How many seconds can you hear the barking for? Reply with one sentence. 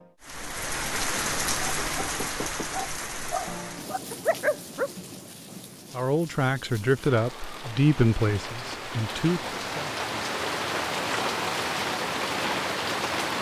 You can hear the barking for 3 seconds altogether.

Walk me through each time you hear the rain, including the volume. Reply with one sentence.
You can hear the rain from 0.0 to 13.3 s, getting quieter then louder.